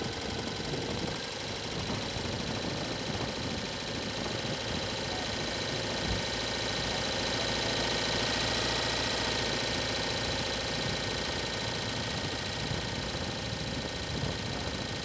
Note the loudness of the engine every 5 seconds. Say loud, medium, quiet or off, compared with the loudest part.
medium, loud, loud.